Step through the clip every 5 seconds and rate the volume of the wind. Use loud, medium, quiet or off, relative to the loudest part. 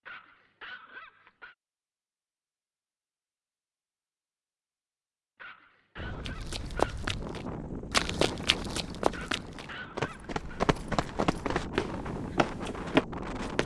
off, loud, loud.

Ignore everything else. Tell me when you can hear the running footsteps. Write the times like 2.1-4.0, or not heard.
6.2-13.6.